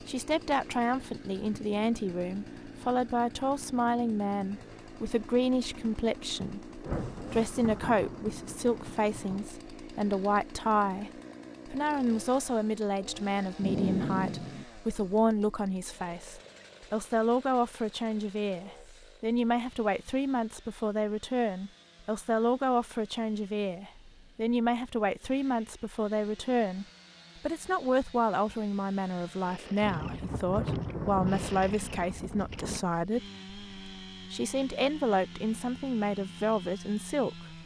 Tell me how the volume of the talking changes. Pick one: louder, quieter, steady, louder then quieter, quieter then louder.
steady.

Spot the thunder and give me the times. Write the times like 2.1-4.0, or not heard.
6.8-9.4, 13.6-14.7, 29.8-32.9.